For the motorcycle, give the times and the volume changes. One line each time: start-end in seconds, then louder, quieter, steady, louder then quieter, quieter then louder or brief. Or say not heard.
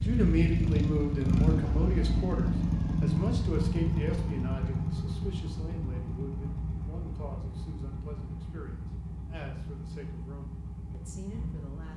0.0-11.9 quieter.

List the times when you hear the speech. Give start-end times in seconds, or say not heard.
0.0-11.9.